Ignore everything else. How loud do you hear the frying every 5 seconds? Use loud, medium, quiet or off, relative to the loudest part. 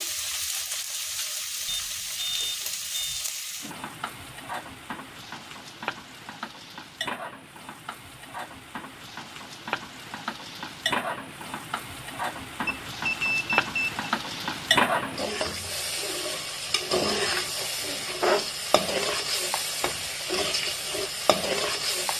medium, medium, loud, loud, loud.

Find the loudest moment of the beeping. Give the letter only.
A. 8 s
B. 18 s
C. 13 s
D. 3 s
C.